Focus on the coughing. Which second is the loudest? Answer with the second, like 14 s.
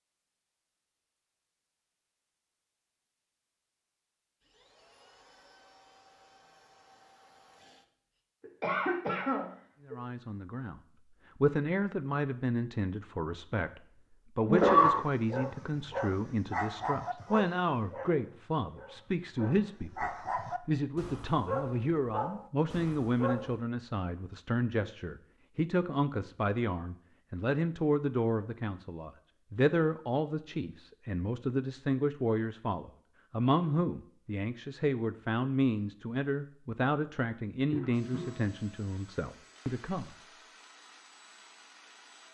15 s.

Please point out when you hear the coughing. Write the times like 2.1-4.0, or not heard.
8.6-9.9, 14.4-15.1, 37.7-38.4.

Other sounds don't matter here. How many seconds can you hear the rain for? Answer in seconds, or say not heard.
not heard.